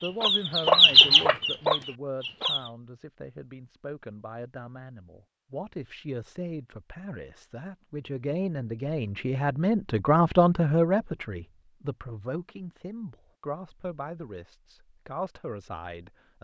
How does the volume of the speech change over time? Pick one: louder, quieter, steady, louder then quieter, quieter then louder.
louder then quieter.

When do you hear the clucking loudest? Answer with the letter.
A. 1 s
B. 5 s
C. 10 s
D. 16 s
A.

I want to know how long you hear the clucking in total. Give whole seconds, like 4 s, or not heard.
3 s.